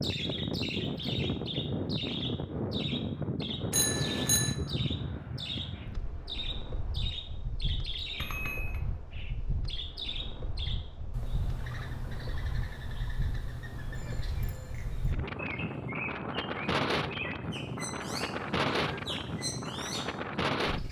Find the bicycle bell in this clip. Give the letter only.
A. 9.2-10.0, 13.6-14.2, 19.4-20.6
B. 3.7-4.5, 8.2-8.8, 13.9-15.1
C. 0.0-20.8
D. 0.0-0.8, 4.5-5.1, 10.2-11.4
B.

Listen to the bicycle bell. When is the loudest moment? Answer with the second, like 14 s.
4 s.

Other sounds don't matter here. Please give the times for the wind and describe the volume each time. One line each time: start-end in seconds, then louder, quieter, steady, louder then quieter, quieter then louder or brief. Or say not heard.
0.0-20.8 quieter then louder.